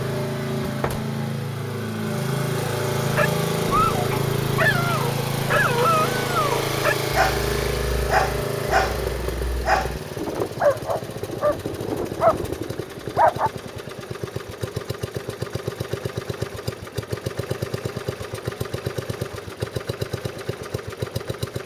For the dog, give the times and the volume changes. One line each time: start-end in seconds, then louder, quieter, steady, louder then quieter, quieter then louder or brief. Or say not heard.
3.1-13.5 steady.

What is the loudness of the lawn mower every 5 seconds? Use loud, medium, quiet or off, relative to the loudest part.
loud, loud, medium, medium, medium.